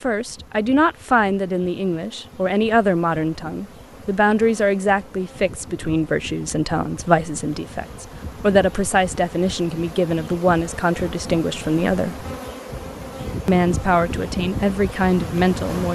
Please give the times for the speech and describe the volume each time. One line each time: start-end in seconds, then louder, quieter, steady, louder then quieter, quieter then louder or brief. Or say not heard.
0.0-12.2 steady
13.4-15.9 brief.